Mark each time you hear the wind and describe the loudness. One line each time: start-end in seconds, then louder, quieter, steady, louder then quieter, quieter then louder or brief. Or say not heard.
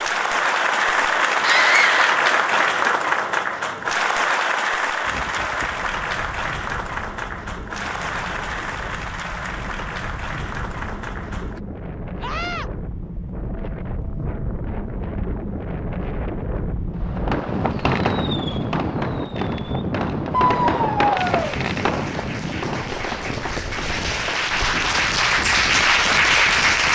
5.0-26.9 louder then quieter.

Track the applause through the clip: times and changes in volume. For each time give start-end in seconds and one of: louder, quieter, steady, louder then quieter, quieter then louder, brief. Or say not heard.
0.0-11.6 quieter
21.1-26.9 louder.